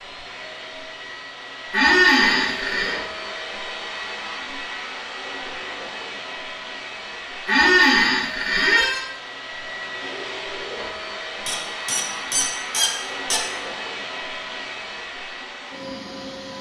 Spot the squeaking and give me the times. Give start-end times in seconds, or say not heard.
1.7-3.0, 7.5-9.1, 11.4-13.4.